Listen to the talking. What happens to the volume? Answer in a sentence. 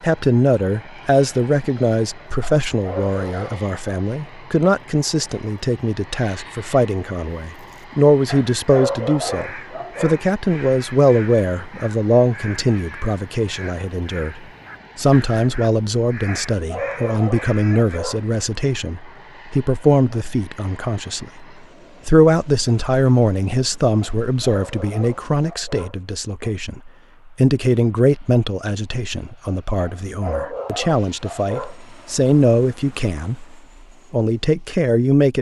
The loudness of the talking stays about the same.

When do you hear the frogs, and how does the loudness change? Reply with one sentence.
You can't hear the frogs here.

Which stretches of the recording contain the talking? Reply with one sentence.
The talking can be heard from 0.0 to 21.4 s and from 22.1 to 35.3 s.